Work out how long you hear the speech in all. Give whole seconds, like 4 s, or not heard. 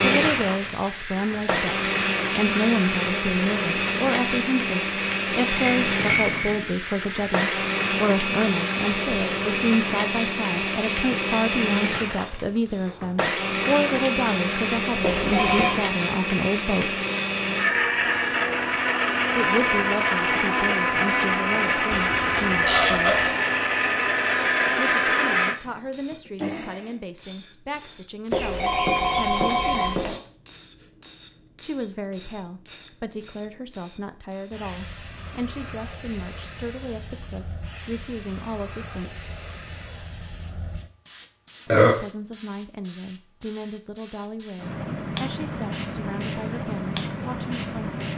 40 s.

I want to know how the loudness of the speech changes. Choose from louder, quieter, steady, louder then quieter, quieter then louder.
quieter.